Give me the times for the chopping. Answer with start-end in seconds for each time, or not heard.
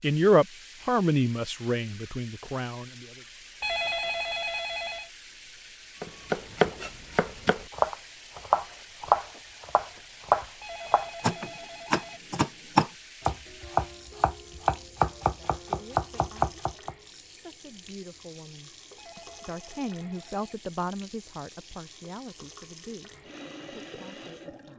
6.0-16.9.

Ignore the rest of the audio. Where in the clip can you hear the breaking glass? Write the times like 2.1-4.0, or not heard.
not heard.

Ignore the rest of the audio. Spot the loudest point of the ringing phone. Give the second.
4 s.